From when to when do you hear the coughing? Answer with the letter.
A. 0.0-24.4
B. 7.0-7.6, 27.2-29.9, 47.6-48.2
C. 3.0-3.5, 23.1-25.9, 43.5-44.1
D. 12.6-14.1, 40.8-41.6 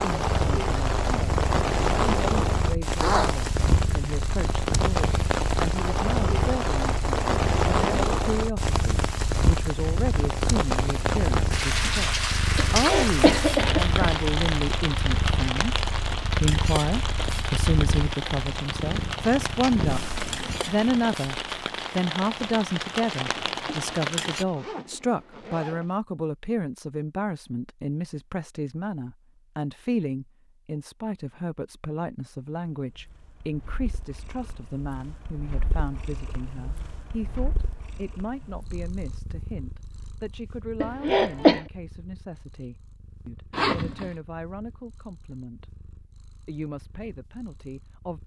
D.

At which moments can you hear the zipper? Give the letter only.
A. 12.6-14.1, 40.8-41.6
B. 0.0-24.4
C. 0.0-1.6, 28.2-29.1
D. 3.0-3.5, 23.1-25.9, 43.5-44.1
D.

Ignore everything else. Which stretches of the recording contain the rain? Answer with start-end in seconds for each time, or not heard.
0.0-24.4.